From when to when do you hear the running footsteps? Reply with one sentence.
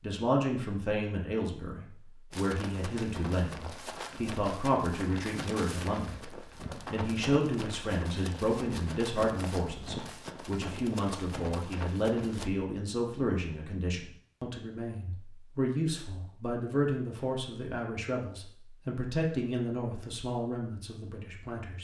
The running footsteps can be heard from 2.3 to 12.5 s.